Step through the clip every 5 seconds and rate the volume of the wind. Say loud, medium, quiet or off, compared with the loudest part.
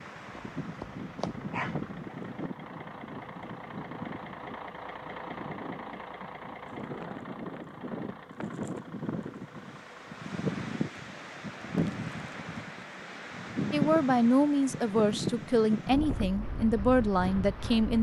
medium, medium, loud, loud.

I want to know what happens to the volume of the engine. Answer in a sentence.
The volume of the engine goes up, then down.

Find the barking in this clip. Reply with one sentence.
The barking can be heard from 0.3 to 1.9 s.